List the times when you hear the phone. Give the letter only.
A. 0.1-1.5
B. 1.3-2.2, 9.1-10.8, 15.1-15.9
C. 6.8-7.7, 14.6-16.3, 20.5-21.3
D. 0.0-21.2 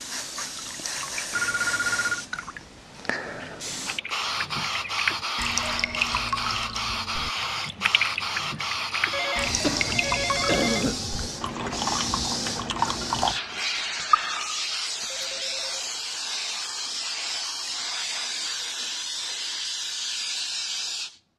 B.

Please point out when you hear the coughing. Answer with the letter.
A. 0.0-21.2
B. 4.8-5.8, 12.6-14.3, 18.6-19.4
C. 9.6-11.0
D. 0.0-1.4
C.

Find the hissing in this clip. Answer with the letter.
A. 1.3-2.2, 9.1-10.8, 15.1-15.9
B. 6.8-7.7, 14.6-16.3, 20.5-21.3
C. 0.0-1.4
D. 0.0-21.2
D.